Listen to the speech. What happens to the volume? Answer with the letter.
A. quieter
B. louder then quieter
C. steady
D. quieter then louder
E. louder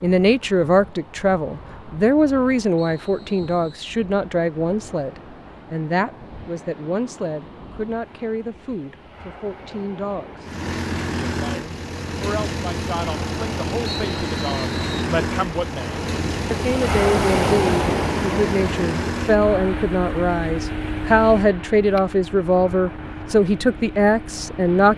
D.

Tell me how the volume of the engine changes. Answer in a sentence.
The volume of the engine goes down.